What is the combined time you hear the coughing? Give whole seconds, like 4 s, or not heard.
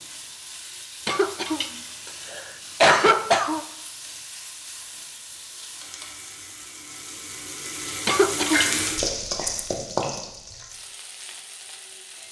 3 s.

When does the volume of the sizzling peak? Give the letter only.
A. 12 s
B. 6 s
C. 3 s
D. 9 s
D.